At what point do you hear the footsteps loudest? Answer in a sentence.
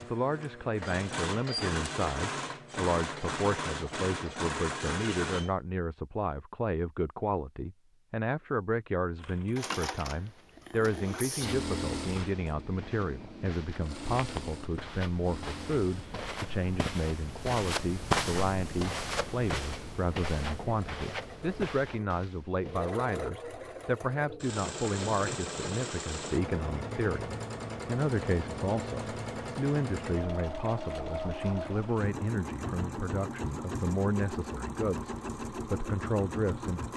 The loudest moment of the footsteps is at 18 seconds.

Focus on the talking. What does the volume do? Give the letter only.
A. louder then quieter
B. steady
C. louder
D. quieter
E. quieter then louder
B.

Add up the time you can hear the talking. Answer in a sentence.
You can hear the talking for 37 seconds altogether.